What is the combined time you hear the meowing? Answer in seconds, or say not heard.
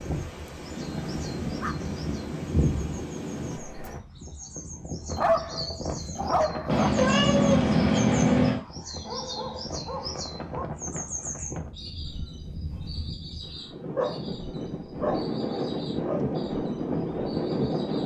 2 s.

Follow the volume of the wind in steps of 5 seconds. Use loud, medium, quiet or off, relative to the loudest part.
medium, medium, medium, loud.